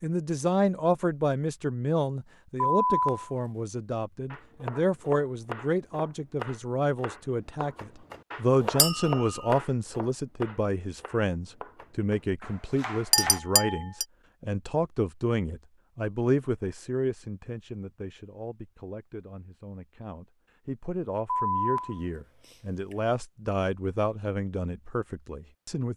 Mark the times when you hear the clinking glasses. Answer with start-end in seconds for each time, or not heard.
8.8-9.6, 13.1-14.1.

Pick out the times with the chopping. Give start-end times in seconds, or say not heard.
4.3-13.4.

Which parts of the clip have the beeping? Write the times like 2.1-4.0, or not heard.
2.6-3.4, 21.2-22.9.